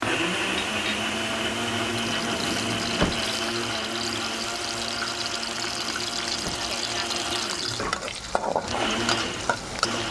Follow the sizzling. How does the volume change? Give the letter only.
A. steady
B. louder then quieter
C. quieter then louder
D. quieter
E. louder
E.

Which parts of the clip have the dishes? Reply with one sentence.
The dishes can't be heard in this clip.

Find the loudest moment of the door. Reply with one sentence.
The volume of the door peaks at 3 seconds.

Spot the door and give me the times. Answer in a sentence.
You can hear the door from 2.0 to 3.2 s and from 5.8 to 6.7 s.